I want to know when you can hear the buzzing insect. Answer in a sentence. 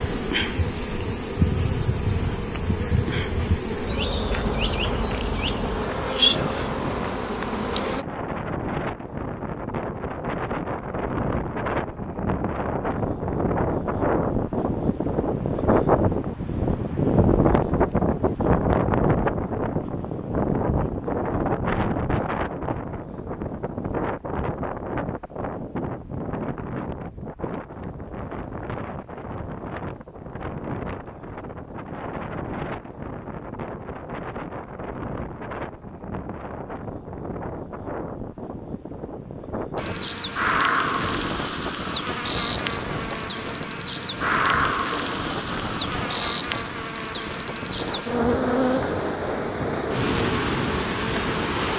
You can hear the buzzing insect from 0.0 to 8.1 s and from 39.8 to 51.7 s.